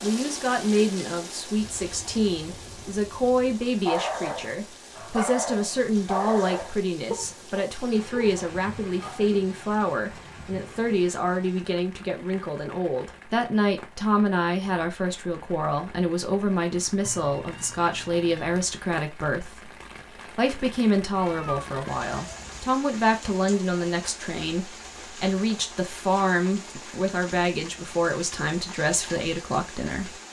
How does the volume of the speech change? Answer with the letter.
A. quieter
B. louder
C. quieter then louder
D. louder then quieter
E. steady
E.